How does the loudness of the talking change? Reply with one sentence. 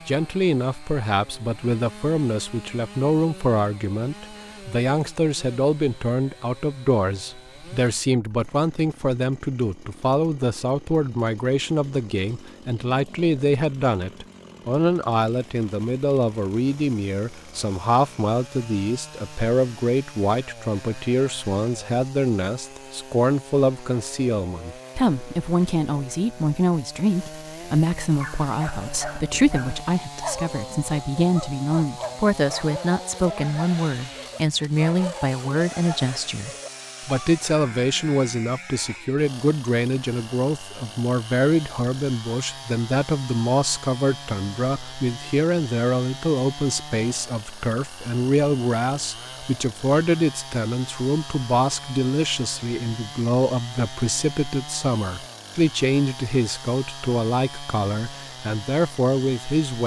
The loudness of the talking stays about the same.